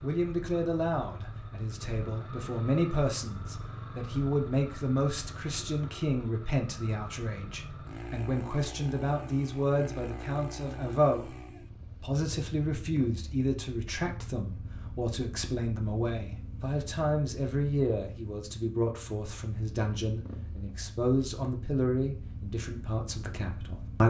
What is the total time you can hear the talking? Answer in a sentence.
You can hear the talking for 23 seconds altogether.